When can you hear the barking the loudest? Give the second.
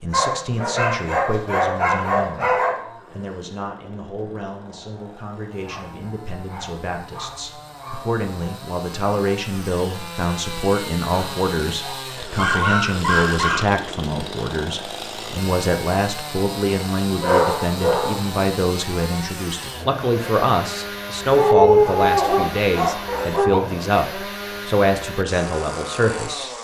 22 s.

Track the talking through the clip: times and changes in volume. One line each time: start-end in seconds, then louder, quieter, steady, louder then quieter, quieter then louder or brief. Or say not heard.
0.0-2.5 brief
3.1-26.5 louder.